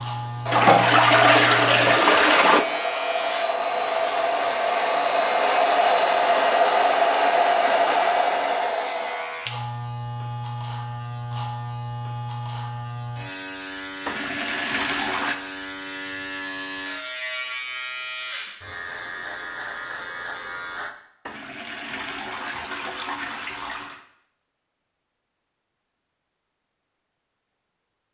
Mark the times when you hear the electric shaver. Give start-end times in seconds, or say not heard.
0.0-20.9.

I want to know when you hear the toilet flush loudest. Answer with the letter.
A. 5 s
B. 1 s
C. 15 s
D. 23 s
B.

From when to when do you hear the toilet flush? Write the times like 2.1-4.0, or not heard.
0.5-2.6, 14.1-15.3, 21.2-24.0.